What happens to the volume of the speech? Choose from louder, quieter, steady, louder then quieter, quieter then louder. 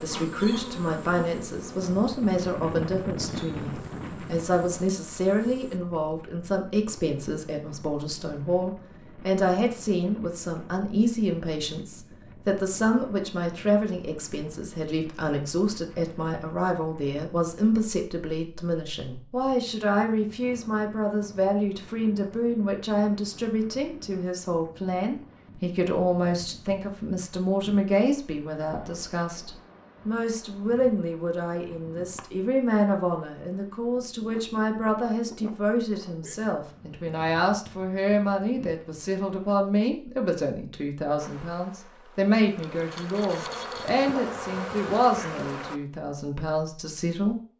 steady.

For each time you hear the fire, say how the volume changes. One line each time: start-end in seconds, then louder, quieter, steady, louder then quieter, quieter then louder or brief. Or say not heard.
not heard.